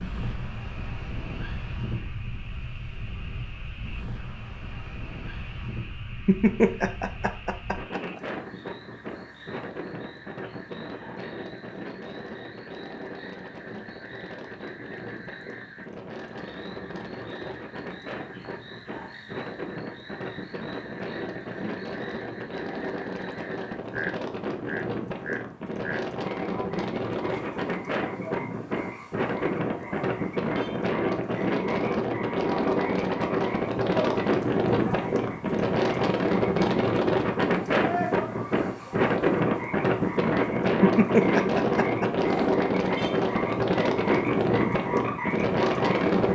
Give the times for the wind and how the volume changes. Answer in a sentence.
You can hear the wind from 0.0 to 46.3 s, getting louder.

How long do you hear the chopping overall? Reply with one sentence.
The chopping can't be heard in this clip.